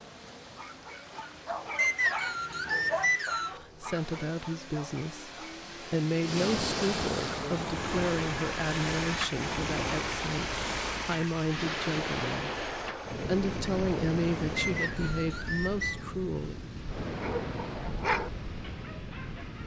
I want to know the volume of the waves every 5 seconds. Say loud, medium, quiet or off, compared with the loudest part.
quiet, loud, loud, medium.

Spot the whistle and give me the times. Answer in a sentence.
The whistle can be heard from 1.8 to 3.6 s and from 14.6 to 16.1 s.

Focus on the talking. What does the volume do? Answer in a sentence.
The volume of the talking stays about the same.